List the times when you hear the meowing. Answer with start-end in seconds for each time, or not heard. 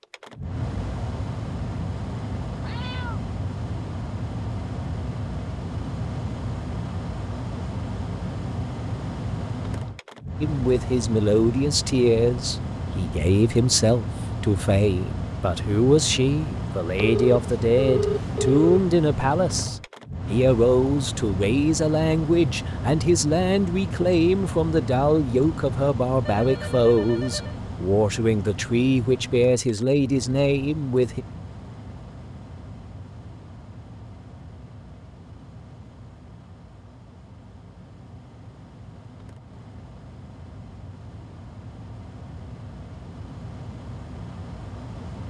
2.6-3.2.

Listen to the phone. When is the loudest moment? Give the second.
18 s.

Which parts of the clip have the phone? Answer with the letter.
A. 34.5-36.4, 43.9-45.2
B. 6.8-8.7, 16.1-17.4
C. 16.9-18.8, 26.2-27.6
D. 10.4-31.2
C.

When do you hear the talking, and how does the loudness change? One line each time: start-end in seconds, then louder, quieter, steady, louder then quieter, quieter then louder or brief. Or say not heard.
10.4-31.2 steady.